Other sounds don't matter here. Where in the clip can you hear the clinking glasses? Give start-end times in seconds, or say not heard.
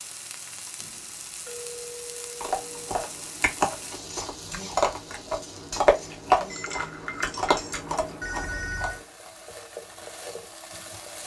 6.5-8.0.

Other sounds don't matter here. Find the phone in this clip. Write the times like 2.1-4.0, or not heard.
0.8-3.0, 8.2-9.0.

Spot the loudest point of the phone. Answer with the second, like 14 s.
9 s.